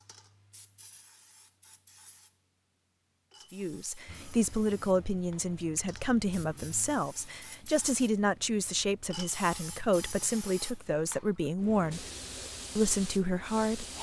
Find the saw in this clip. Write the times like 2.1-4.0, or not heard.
not heard.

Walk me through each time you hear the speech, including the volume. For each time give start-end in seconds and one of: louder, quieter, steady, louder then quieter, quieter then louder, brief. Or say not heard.
3.5-12.1 steady
12.8-13.9 brief.